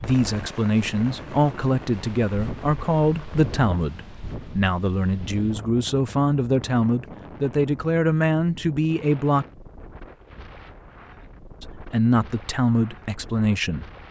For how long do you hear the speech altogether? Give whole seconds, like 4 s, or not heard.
12 s.